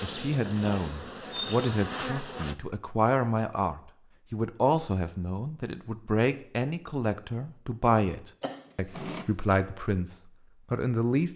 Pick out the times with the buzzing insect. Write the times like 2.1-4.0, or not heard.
0.0-2.5.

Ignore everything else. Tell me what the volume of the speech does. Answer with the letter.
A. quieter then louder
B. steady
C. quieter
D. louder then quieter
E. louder
B.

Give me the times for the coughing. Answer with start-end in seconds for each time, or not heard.
8.4-9.2.